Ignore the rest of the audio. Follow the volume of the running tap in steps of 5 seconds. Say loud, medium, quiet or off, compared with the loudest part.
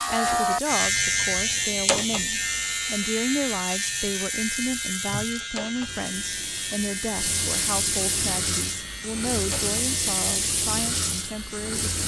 medium, loud, loud.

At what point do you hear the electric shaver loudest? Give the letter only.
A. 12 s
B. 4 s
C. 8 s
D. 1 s
D.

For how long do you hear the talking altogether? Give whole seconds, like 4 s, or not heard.
12 s.